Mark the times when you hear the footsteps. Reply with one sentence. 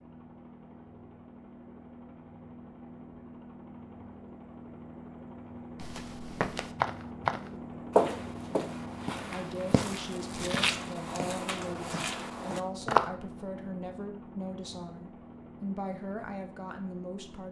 The footsteps can be heard from 5.8 to 13.1 s.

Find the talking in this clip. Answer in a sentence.
You can hear the talking from 9.2 to 17.4 s.